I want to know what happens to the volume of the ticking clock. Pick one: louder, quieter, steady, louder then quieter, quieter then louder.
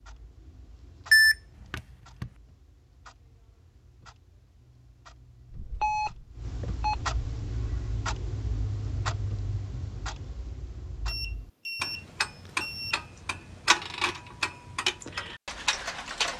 louder.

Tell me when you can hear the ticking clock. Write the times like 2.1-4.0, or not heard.
0.0-16.3.